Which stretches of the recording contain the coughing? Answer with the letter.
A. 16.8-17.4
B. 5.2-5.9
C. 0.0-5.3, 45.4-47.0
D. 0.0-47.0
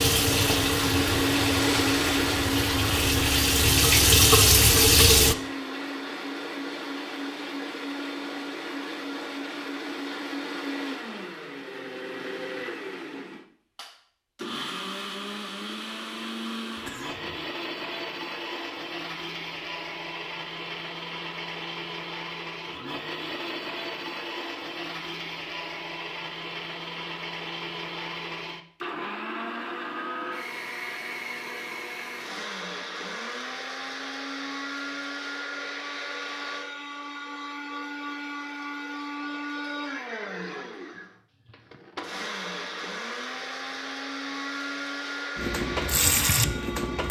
A.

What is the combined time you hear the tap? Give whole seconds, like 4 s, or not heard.
7 s.